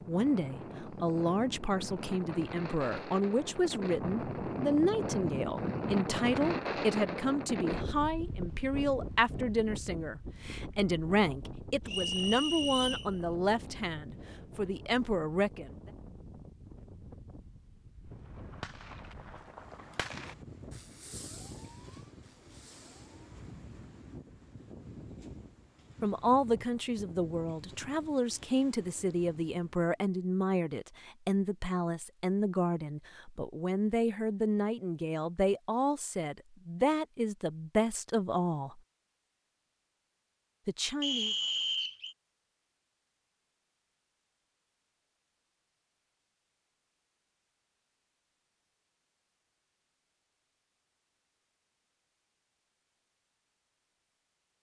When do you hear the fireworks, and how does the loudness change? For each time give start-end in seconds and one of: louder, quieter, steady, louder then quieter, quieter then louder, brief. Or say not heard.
18.1-23.4 quieter.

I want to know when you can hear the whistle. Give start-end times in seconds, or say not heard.
11.8-13.1, 41.0-42.1.